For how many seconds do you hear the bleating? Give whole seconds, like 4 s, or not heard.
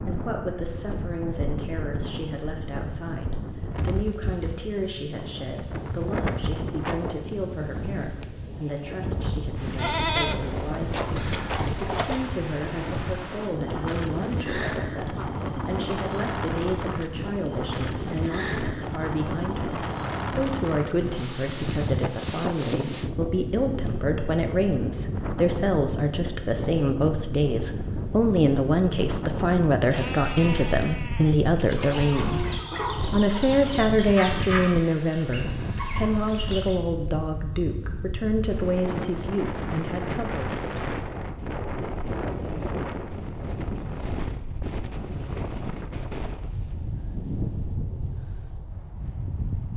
5 s.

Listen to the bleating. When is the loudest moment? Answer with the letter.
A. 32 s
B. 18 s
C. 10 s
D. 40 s
C.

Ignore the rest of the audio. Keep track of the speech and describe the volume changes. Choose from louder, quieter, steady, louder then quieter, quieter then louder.
louder.